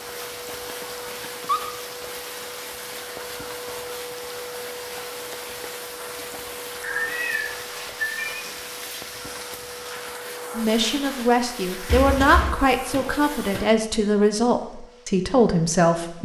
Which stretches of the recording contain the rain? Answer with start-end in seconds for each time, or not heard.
0.0-10.2.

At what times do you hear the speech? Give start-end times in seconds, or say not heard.
10.6-16.2.